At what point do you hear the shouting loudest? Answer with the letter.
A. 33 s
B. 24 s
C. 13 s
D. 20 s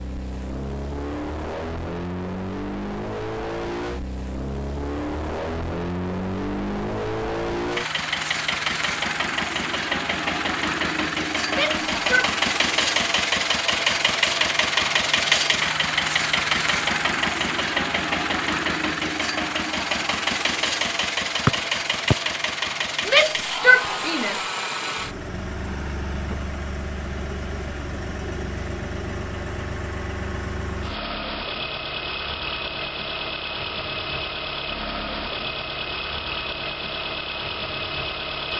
B.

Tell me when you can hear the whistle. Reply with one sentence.
You can hear the whistle from 21.4 to 22.1 s.